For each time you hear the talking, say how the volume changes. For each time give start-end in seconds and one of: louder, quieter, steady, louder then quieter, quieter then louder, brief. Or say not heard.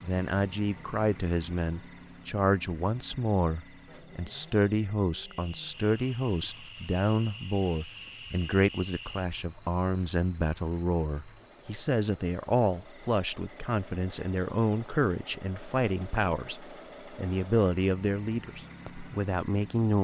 0.0-19.9 steady.